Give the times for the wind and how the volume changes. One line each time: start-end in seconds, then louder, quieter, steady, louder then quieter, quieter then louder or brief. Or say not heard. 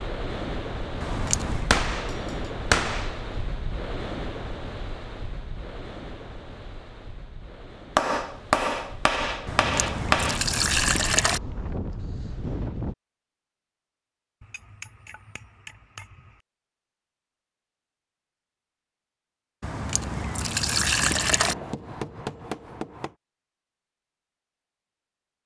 0.0-12.9 quieter then louder.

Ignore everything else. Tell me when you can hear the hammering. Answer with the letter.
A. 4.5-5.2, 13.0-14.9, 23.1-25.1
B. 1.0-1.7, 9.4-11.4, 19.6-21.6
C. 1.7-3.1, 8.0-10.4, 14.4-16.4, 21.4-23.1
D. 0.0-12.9
C.